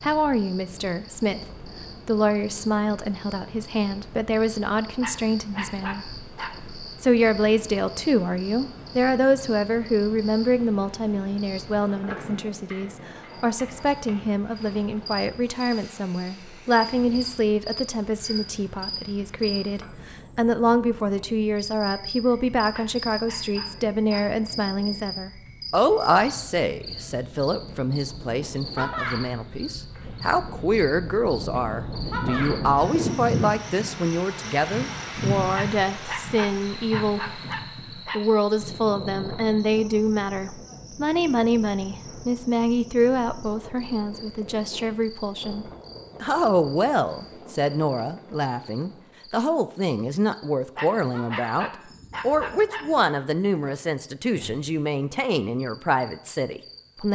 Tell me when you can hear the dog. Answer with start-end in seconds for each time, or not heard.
5.0-6.5, 22.7-24.2, 35.5-38.2, 50.8-52.9.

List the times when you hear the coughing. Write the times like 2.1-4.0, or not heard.
not heard.